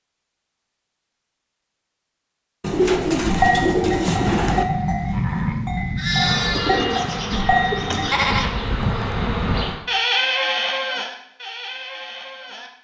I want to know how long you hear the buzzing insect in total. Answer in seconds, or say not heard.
4 s.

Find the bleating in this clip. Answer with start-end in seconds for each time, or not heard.
3.0-12.7.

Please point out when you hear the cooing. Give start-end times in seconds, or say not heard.
2.6-4.7, 6.5-8.4.